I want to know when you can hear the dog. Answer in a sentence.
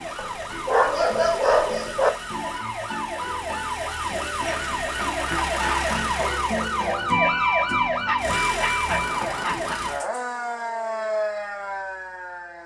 The dog can be heard from 0.1 to 2.1 s and from 8.1 to 9.8 s.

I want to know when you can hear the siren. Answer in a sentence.
You can hear the siren from 0.0 to 12.6 s.